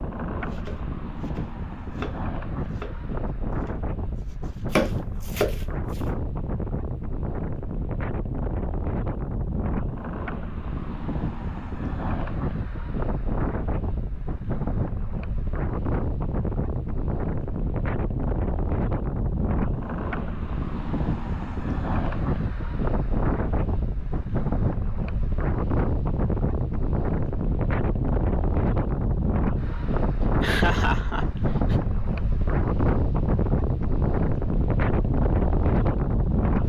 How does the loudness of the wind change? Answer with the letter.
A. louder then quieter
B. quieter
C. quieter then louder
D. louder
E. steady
D.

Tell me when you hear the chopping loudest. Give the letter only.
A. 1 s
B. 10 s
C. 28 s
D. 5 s
D.